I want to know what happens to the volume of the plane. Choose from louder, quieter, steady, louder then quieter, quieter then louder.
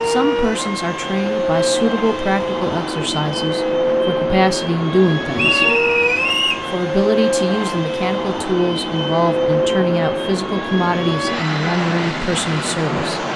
steady.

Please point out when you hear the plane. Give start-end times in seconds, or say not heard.
0.0-13.3.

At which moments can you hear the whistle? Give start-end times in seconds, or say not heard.
5.3-6.7.